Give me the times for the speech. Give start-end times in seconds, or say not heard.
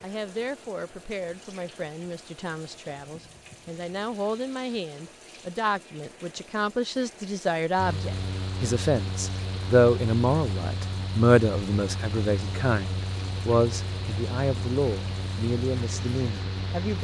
0.0-17.0.